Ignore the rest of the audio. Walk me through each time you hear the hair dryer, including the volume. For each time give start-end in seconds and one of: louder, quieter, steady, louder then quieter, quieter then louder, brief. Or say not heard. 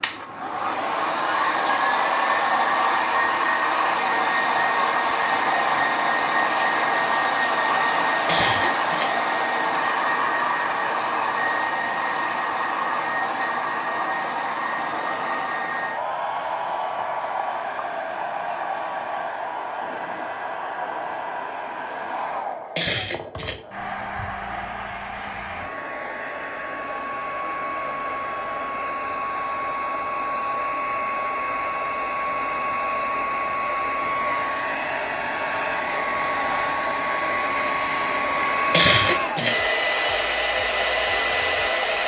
0.0-42.0 quieter then louder.